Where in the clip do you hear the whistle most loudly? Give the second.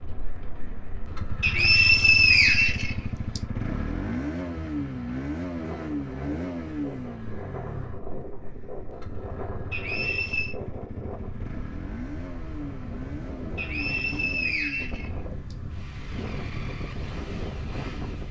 2 s.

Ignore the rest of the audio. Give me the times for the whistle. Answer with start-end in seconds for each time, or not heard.
1.4-3.4, 9.7-10.6, 13.6-15.6.